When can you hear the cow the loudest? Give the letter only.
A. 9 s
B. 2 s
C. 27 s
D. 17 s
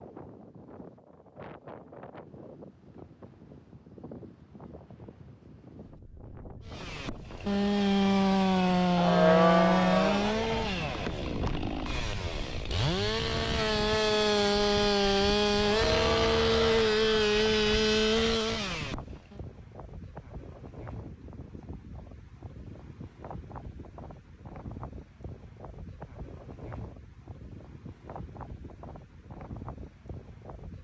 A.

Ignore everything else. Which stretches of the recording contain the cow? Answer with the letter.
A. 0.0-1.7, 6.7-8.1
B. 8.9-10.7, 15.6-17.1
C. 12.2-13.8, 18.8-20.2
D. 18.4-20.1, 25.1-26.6
B.